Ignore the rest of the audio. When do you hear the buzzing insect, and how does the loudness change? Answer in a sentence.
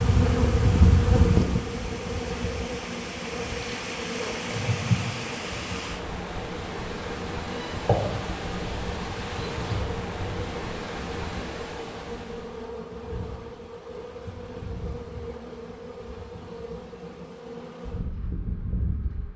The buzzing insect can be heard from 0.0 to 19.3 s, getting quieter.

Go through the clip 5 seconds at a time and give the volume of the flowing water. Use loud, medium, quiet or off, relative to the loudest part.
loud, loud, loud, off.